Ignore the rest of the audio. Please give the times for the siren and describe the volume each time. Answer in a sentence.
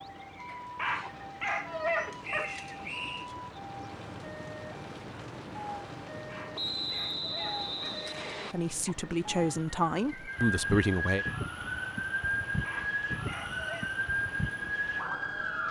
The siren can be heard from 0.0 to 15.6 s, getting louder.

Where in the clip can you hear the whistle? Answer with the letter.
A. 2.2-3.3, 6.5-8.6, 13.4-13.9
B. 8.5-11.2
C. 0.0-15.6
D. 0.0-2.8
A.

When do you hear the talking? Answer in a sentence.
You can hear the talking from 8.5 to 11.2 s.